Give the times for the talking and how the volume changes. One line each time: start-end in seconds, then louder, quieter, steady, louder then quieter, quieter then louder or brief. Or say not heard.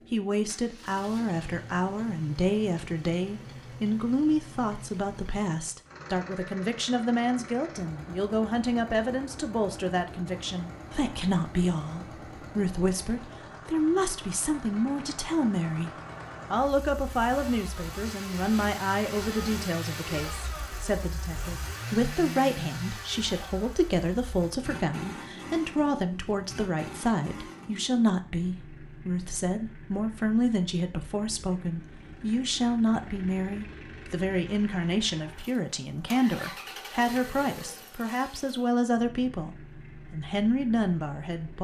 0.1-41.5 steady.